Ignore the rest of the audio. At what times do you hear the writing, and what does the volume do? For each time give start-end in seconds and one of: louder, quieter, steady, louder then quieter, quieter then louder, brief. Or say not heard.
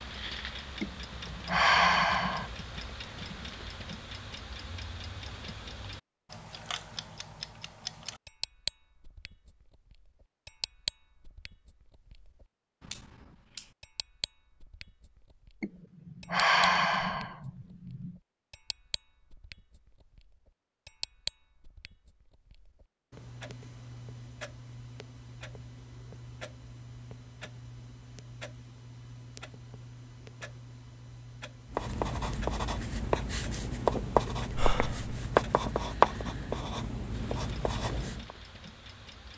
31.7-38.4 louder then quieter.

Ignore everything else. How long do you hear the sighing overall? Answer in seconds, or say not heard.
5 s.